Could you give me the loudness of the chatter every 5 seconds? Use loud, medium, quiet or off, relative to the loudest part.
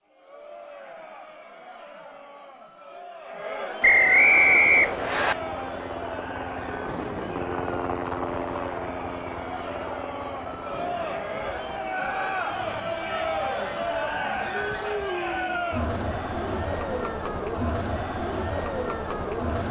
medium, medium, loud, loud.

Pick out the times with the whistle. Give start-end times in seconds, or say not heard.
3.8-5.3.